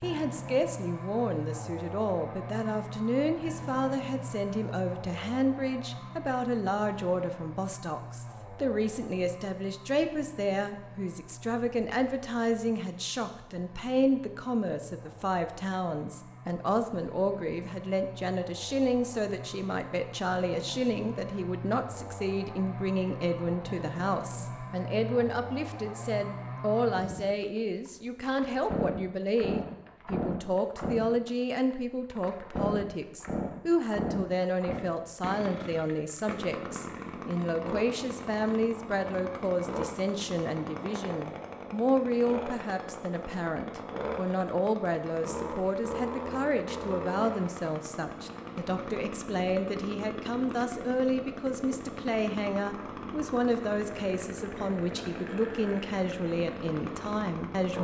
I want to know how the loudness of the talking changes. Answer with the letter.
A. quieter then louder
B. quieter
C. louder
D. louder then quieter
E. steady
E.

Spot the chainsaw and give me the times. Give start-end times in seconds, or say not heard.
0.0-57.7.